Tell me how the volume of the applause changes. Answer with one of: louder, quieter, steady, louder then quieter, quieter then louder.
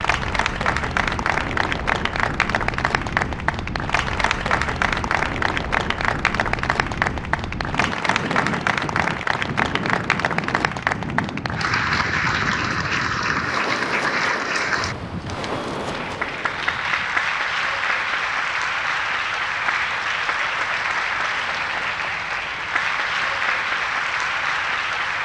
steady.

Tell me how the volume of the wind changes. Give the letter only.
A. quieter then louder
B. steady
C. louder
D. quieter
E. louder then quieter
B.